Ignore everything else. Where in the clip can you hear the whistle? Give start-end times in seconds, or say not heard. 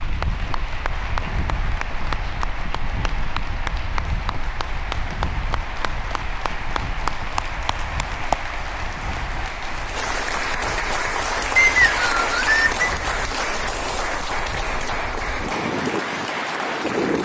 11.6-12.8.